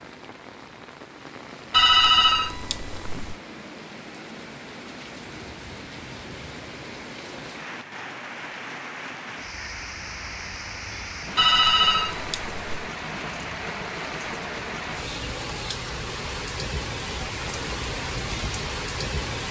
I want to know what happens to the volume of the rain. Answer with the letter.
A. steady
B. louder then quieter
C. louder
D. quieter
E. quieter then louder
C.